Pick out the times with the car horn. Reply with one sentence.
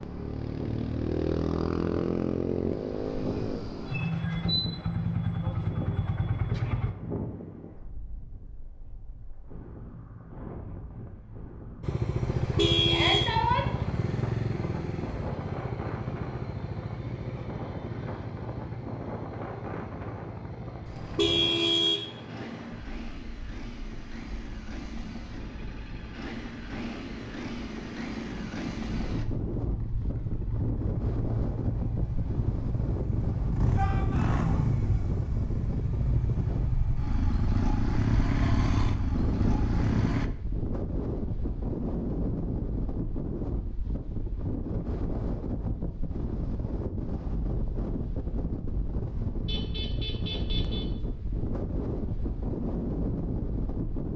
The car horn can be heard from 12.4 to 13.3 s, from 20.9 to 22.1 s and from 49.5 to 50.9 s.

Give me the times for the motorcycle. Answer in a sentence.
You can hear the motorcycle from 0.0 to 7.0 s and from 11.8 to 40.3 s.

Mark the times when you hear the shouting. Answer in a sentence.
The shouting can be heard from 12.8 to 13.8 s and from 33.8 to 34.6 s.